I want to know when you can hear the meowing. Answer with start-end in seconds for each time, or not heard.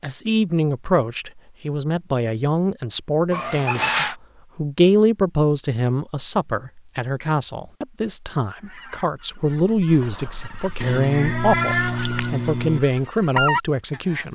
3.3-4.2, 10.8-12.8.